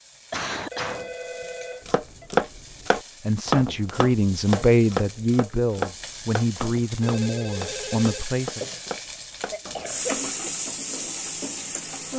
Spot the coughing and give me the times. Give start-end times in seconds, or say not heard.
0.3-1.1, 8.6-10.5.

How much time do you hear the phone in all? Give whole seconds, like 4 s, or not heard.
3 s.